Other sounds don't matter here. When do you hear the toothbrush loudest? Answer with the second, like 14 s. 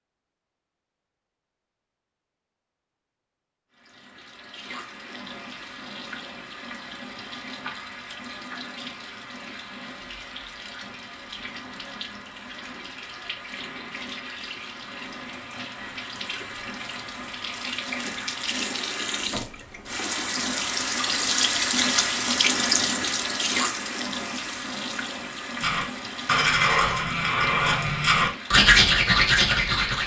29 s.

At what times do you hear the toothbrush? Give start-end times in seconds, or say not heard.
25.6-30.0.